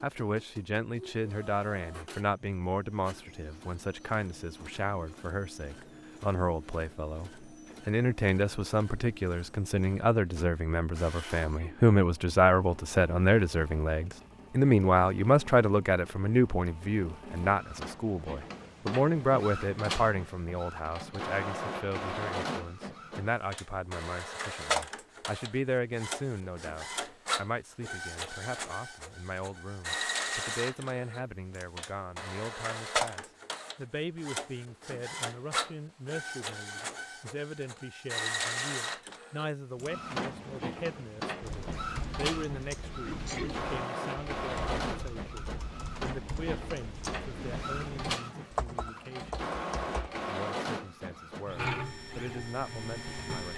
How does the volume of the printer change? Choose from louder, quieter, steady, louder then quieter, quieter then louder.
louder.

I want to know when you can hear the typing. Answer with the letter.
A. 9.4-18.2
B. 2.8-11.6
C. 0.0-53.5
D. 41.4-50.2
D.